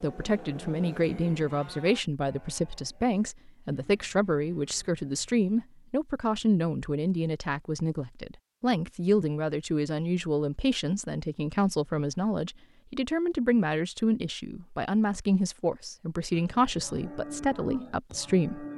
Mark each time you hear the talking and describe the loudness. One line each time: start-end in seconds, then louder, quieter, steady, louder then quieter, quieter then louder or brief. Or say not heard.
0.0-18.6 steady.